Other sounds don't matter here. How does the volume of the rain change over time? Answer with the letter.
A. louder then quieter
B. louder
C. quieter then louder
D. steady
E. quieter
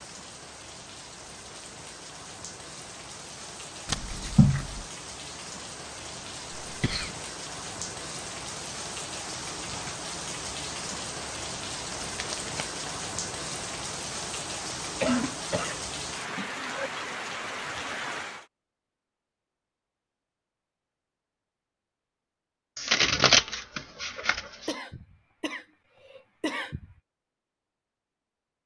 B.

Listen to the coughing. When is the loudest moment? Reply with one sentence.
The loudest moment of the coughing is at 15 seconds.